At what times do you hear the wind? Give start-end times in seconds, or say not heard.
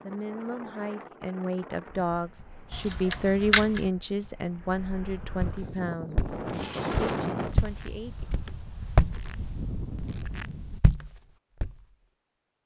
0.0-10.8.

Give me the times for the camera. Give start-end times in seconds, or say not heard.
2.7-3.9, 6.5-7.2.